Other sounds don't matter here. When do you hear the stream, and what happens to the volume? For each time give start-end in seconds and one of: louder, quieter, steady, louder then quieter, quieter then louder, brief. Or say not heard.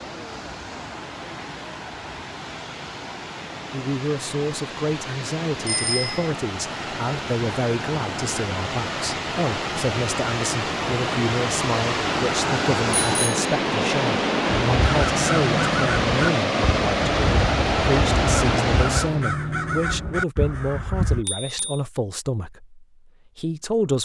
0.0-19.3 louder.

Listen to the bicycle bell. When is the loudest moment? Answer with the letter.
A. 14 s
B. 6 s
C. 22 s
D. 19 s
B.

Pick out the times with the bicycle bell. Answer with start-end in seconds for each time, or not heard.
5.7-6.3, 12.9-13.4, 21.2-21.8.